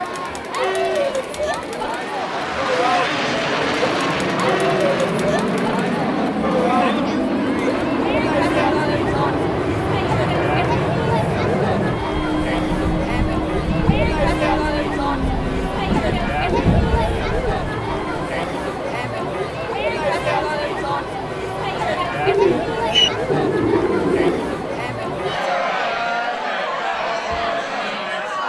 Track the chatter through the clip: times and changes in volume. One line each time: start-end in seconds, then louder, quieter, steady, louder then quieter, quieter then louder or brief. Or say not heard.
0.0-28.4 steady.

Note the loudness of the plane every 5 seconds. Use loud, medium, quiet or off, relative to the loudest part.
loud, loud, loud, loud, off, off.